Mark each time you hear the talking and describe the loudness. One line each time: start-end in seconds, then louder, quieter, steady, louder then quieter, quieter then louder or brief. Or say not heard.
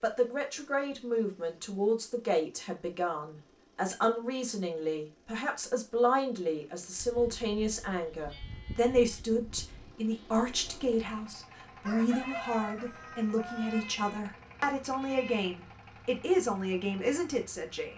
0.0-17.9 steady.